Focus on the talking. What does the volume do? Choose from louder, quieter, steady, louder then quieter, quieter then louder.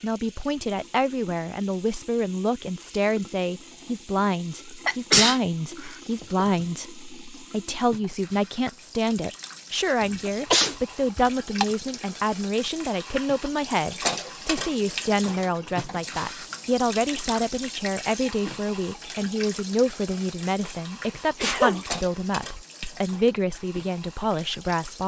steady.